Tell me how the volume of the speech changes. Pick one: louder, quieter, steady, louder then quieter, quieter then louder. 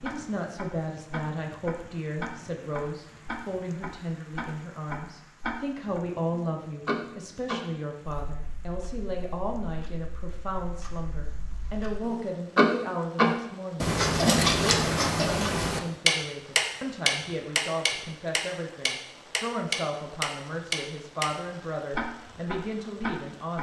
steady.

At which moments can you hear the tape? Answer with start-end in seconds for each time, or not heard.
not heard.